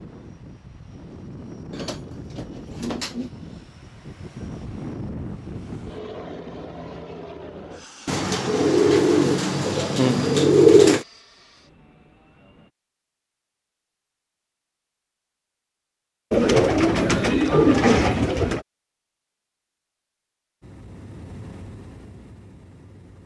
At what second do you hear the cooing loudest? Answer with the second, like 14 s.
11 s.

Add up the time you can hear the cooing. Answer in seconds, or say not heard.
7 s.